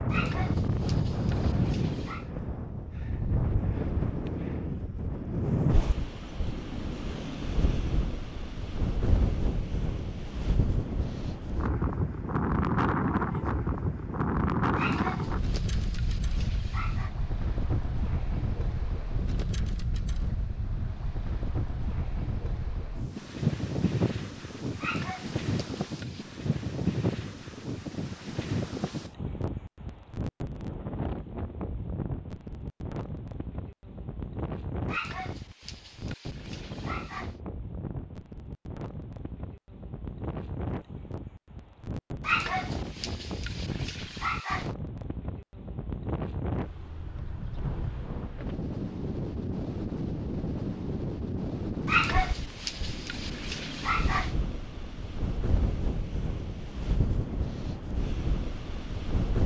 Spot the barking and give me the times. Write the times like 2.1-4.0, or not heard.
0.1-2.2, 14.8-17.1, 24.8-26.4, 34.9-37.4, 42.2-44.7, 51.9-54.3.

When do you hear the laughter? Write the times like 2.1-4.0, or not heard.
not heard.